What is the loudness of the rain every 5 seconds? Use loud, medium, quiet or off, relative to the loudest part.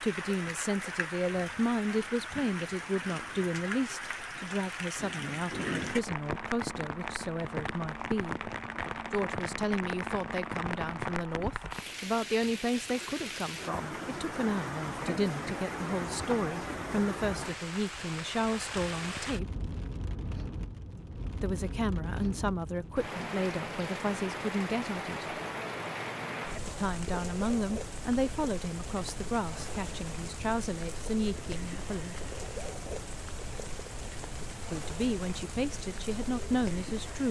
loud, loud, loud, loud, loud, loud, medium, medium.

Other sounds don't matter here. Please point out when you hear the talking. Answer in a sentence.
The talking can be heard from 0.0 to 8.5 s, from 9.1 to 19.6 s, from 21.4 to 25.4 s, from 26.6 to 32.1 s and from 34.7 to 37.2 s.